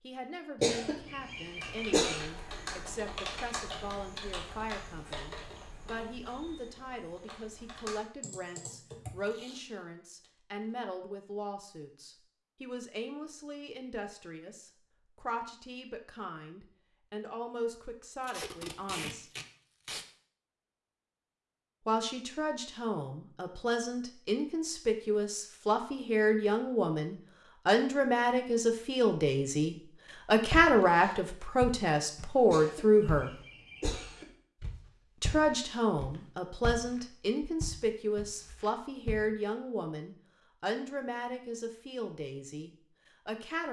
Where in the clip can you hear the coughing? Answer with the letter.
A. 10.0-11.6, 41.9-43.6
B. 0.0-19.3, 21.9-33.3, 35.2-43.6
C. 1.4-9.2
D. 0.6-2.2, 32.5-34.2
D.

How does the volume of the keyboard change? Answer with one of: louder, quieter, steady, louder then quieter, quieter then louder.
quieter then louder.